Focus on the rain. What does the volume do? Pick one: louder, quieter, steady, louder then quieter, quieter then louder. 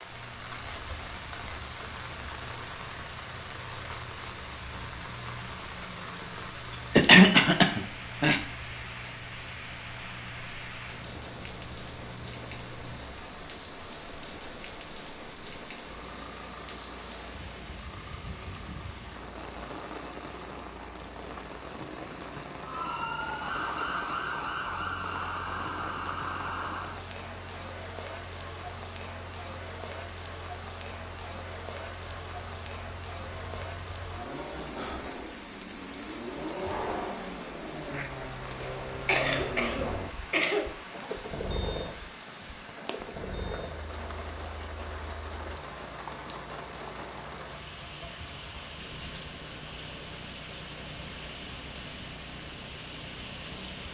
steady.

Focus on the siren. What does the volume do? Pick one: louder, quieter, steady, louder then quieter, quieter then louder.
steady.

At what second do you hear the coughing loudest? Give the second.
7 s.